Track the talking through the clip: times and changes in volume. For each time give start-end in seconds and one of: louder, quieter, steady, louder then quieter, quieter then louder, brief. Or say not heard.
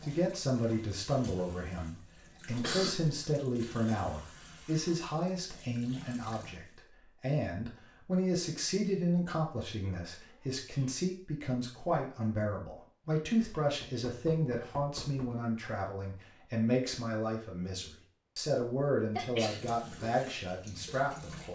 0.0-21.5 steady.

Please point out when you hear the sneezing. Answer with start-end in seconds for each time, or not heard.
2.5-3.2, 10.1-11.0, 19.1-20.1.